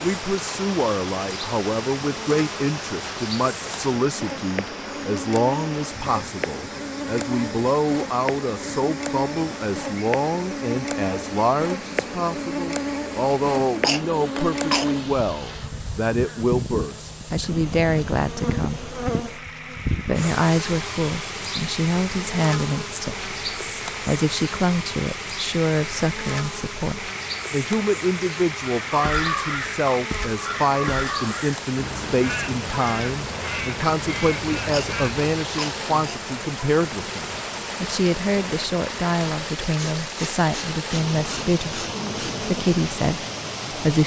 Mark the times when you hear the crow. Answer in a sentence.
The crow can be heard from 28.6 to 35.4 s.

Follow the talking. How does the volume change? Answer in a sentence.
The volume of the talking stays about the same.